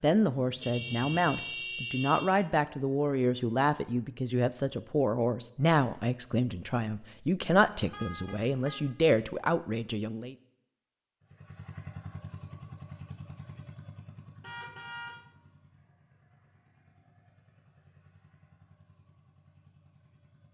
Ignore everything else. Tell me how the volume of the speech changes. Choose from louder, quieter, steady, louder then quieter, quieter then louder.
steady.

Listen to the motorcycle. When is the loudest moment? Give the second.
12 s.